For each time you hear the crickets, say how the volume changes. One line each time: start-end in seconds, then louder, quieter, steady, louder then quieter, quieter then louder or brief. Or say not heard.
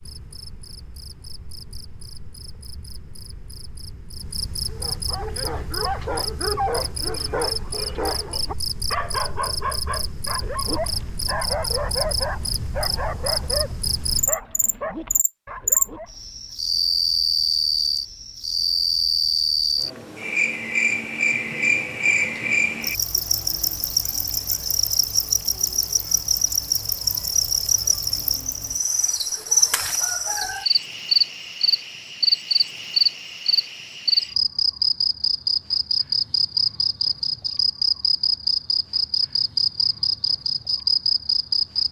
0.0-41.8 louder.